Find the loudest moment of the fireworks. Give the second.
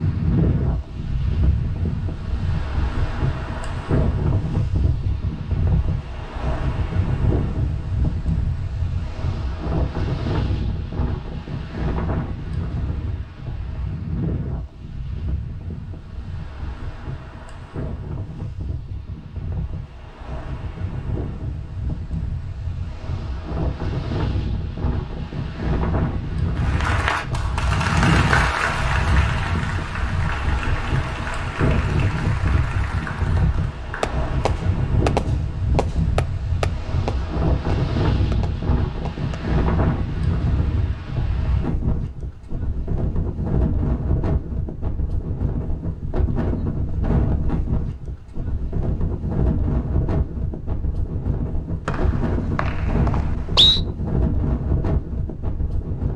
35 s.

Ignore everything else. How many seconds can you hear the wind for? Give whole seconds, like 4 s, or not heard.
56 s.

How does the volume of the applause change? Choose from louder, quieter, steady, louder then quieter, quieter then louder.
quieter.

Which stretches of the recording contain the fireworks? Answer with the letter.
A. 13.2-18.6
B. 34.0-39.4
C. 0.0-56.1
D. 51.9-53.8
B.